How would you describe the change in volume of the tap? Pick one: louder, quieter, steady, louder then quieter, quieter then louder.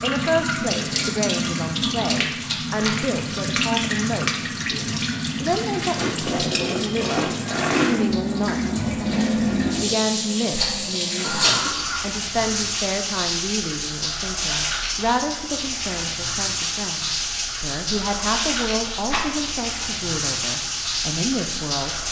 steady.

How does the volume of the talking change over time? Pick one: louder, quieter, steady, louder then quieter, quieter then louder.
steady.